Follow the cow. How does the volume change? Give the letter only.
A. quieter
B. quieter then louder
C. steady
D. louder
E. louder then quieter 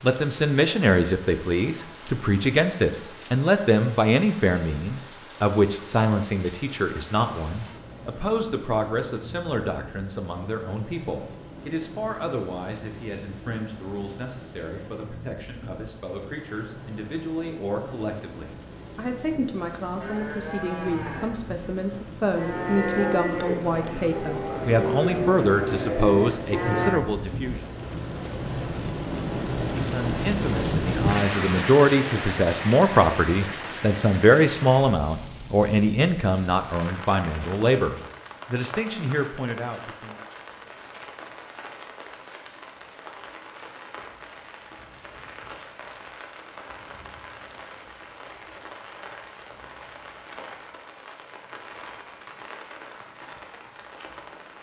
D.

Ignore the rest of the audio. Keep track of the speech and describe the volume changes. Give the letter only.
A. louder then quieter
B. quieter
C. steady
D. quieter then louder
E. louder
D.